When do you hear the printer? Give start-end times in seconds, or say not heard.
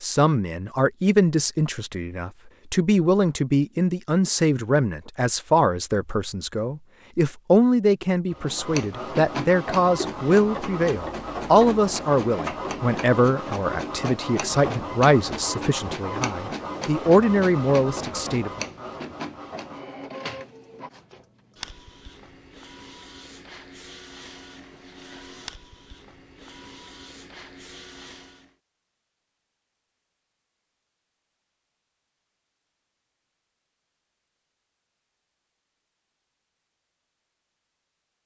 8.3-28.6.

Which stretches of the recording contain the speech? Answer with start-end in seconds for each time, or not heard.
0.0-18.5.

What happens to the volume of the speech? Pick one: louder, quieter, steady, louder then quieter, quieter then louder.
steady.